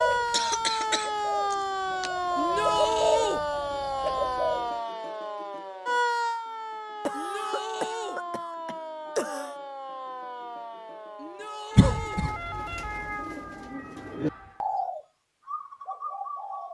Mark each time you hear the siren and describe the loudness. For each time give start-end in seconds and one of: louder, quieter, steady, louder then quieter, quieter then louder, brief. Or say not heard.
0.0-14.7 quieter.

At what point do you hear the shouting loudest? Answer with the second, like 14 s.
3 s.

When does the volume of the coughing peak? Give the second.
12 s.